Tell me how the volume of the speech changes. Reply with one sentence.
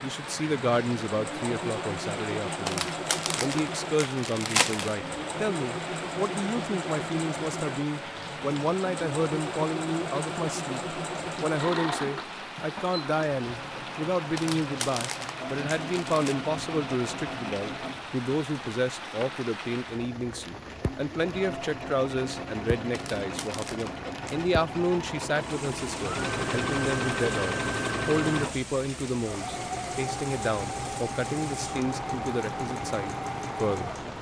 The volume of the speech stays about the same.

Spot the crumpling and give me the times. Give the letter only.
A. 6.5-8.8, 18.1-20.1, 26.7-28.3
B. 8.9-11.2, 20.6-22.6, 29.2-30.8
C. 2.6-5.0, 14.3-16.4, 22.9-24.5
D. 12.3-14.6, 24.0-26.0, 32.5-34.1
C.